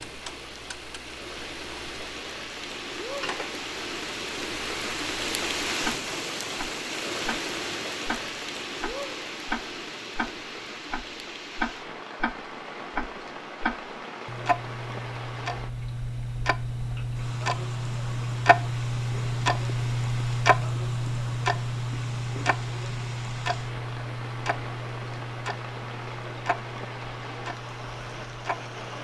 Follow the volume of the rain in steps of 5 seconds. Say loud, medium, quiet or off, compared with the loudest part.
loud, loud, medium, medium, medium, medium.